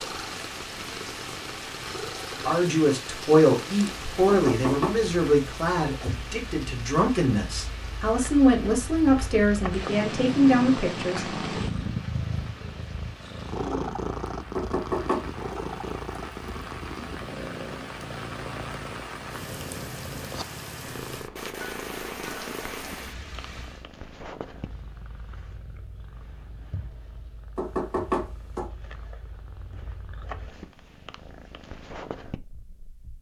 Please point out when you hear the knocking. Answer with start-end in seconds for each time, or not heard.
4.2-5.0, 14.6-15.2, 27.6-28.6.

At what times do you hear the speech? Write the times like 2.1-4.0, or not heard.
2.5-11.4.